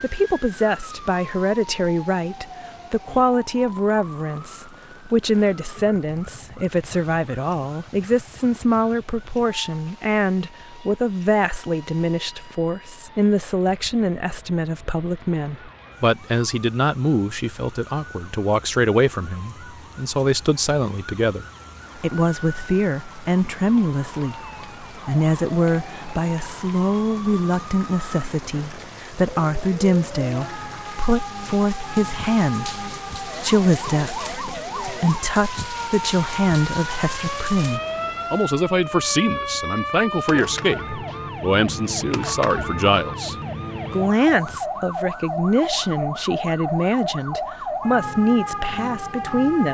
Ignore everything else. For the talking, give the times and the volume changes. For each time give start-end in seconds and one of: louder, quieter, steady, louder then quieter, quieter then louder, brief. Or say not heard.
0.0-49.6 steady.